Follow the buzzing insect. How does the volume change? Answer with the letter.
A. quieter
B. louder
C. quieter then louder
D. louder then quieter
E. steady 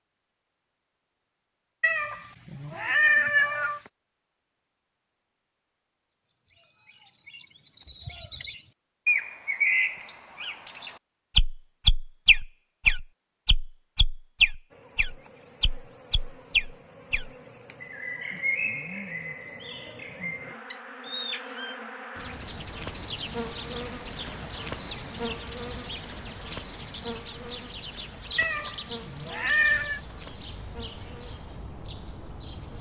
D.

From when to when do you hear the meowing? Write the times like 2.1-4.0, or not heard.
1.8-3.8, 28.4-30.0.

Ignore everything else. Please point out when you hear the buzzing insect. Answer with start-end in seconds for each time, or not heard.
14.7-32.7.